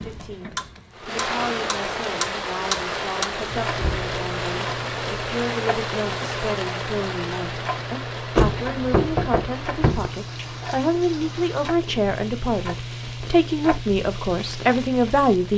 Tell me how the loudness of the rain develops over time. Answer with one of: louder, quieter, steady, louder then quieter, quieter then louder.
quieter.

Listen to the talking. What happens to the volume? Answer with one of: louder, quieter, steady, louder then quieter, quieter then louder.
louder.